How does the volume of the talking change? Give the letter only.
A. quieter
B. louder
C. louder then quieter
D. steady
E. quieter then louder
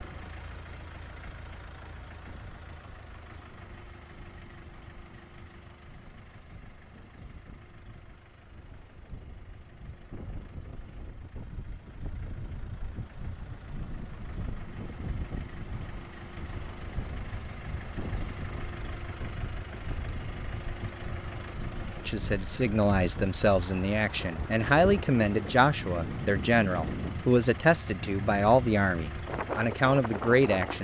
D.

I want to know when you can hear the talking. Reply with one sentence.
The talking can be heard from 22.1 to 30.7 s.